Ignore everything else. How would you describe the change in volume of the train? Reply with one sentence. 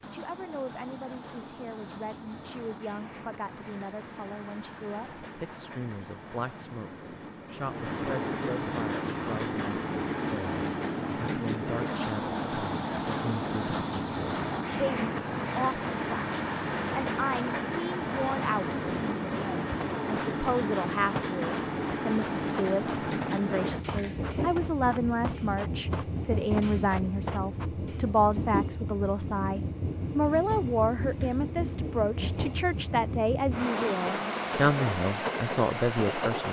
The loudness of the train goes up.